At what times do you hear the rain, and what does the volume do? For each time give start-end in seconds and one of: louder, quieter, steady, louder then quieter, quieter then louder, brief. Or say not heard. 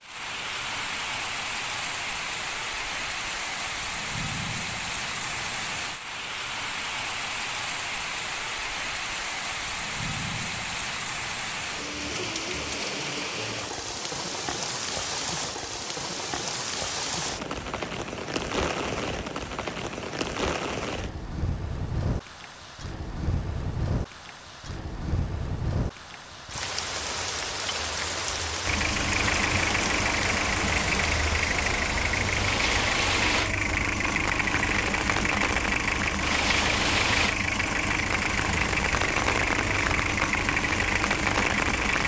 0.0-42.0 steady.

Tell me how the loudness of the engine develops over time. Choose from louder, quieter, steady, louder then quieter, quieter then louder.
steady.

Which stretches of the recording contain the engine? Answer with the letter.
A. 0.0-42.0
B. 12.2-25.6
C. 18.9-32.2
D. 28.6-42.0
D.